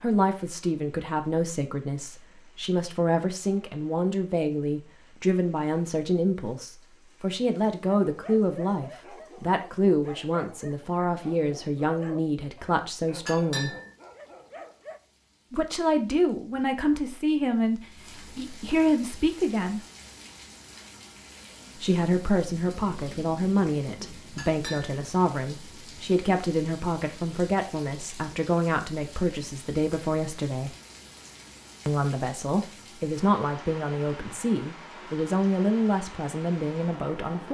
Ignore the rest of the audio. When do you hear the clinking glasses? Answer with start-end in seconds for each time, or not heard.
13.2-13.9, 24.4-25.0.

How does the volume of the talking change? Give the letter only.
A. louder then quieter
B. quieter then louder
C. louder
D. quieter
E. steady
E.